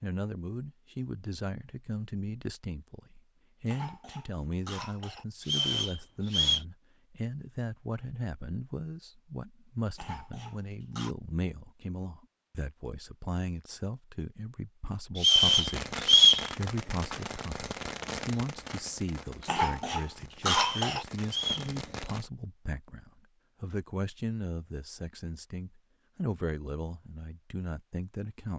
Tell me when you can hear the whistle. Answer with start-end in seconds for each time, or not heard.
5.4-6.6, 15.2-16.4, 20.5-21.7.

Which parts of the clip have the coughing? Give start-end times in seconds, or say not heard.
3.6-5.2, 9.9-11.2, 19.4-21.1.